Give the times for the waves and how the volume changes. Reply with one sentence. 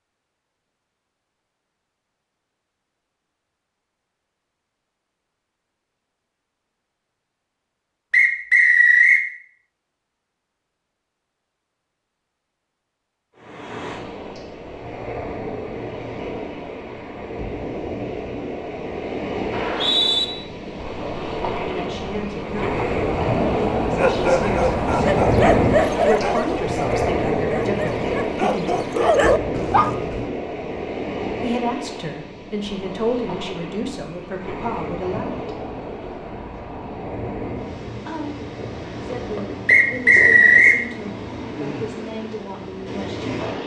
You can hear the waves from 13.3 to 43.6 s, getting louder then quieter.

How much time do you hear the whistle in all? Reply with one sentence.
You can hear the whistle for 3 seconds altogether.